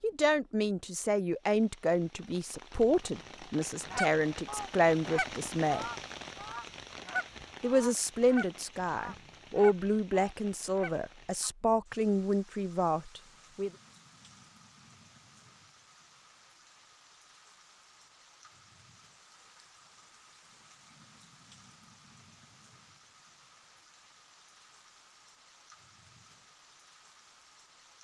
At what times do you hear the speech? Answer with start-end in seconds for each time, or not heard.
0.0-5.8, 7.6-13.7.